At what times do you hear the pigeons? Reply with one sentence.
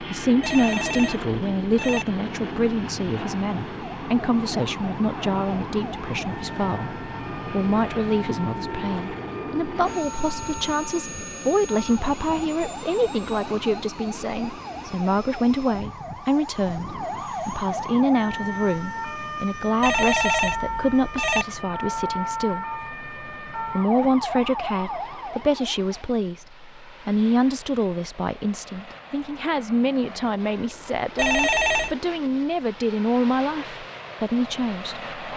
The pigeons can't be heard in this clip.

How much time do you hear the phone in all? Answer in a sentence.
You can hear the phone for 4 seconds altogether.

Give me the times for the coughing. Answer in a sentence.
The coughing can't be heard in this clip.